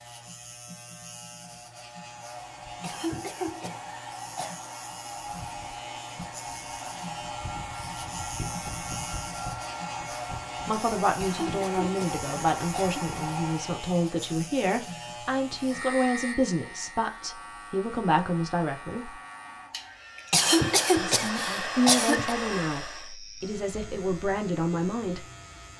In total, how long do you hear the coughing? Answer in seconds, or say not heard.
6 s.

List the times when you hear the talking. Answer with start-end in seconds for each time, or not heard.
10.7-19.1, 21.0-25.2.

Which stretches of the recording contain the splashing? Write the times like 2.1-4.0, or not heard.
not heard.